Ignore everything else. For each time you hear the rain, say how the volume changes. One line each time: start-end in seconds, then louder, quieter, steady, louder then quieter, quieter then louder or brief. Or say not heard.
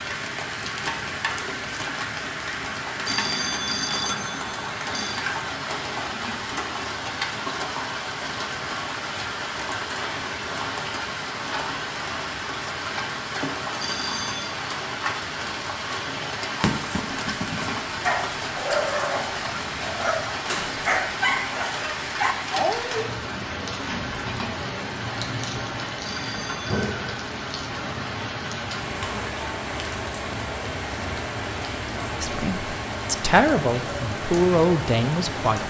0.0-35.6 steady.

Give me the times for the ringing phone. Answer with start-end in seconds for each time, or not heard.
3.0-5.2, 13.8-14.6, 26.1-26.9.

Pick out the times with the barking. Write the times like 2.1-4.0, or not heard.
16.5-23.1.